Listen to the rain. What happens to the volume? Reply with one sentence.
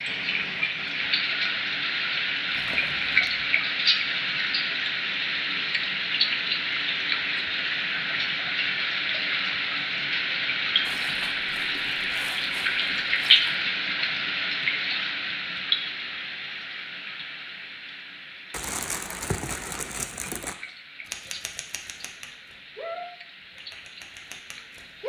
The loudness of the rain goes down.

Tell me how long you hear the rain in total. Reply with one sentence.
The rain can be heard for 25 seconds in total.